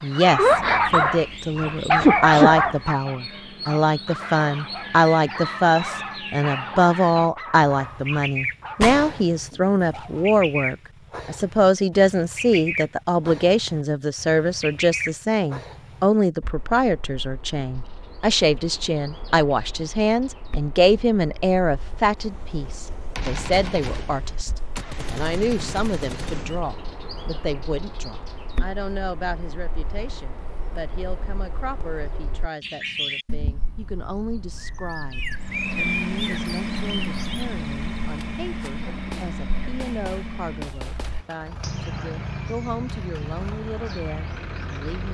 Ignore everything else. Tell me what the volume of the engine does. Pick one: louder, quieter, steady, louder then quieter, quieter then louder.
quieter.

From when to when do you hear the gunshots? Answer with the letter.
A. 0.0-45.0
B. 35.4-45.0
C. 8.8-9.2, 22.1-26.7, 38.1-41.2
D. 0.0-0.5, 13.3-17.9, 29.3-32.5
C.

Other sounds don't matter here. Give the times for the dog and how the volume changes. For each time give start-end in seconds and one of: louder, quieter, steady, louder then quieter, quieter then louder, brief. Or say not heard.
0.1-10.2 quieter.